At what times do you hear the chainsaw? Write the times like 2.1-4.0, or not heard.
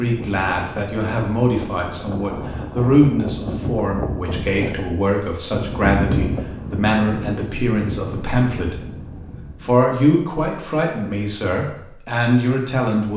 not heard.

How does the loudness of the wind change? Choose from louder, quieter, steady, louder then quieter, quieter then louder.
louder then quieter.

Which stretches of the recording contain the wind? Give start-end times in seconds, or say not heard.
0.0-9.8.